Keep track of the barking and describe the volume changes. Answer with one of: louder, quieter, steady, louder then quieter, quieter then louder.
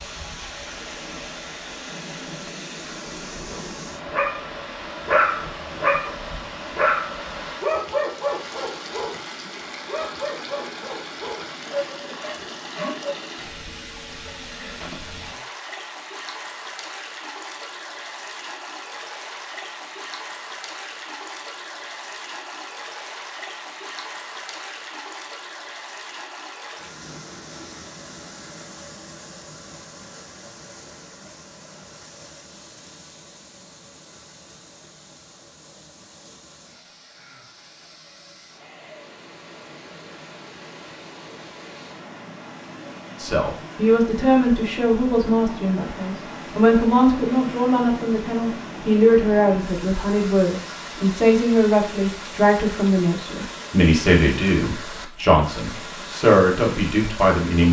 quieter.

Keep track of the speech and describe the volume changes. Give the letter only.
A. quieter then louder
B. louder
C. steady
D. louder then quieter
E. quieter
C.